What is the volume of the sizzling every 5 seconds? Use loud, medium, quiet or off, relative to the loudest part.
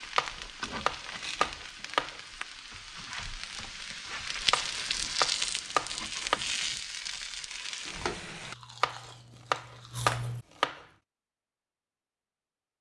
loud, loud, off.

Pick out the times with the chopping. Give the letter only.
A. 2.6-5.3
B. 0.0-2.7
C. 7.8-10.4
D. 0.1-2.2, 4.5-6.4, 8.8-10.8
D.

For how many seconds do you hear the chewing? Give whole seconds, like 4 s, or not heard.
3 s.